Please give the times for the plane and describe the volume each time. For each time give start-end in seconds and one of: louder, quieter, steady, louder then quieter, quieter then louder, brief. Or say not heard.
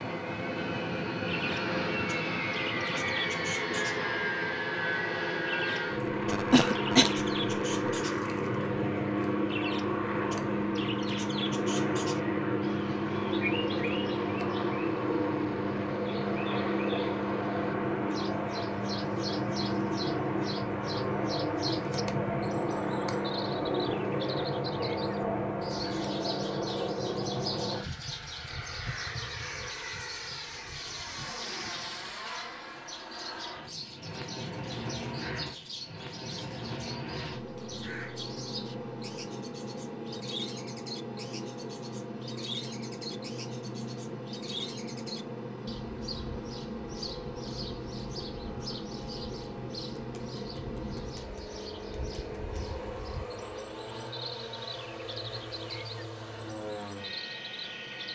0.0-58.0 quieter.